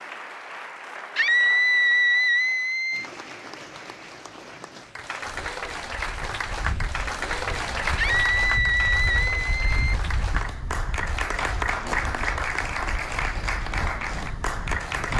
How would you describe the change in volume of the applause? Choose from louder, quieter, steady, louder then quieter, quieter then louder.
louder.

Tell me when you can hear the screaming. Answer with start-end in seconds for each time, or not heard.
1.1-3.1, 8.0-9.9.